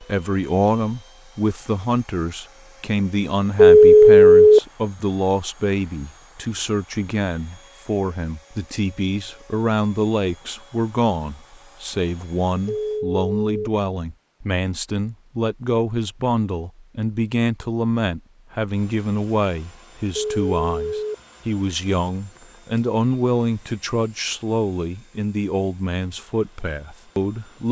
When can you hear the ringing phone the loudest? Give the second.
4 s.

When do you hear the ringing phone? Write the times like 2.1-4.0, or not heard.
3.5-4.6, 12.7-13.7, 20.1-21.1.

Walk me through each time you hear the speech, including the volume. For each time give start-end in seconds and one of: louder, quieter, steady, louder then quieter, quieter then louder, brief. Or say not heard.
0.0-27.6 steady.